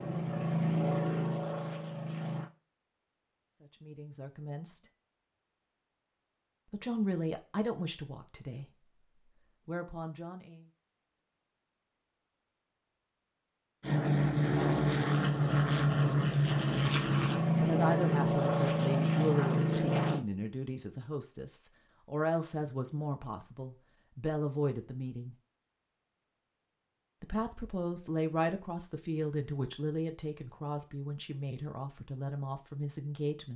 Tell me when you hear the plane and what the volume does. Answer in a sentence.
The plane can be heard briefly from 0.0 to 2.5 s; and from 13.8 to 20.2 s, at a steady volume.